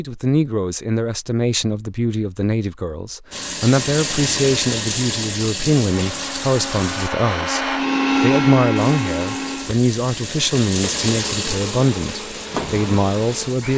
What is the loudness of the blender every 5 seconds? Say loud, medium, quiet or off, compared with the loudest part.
off, loud, medium.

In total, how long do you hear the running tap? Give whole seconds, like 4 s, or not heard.
9 s.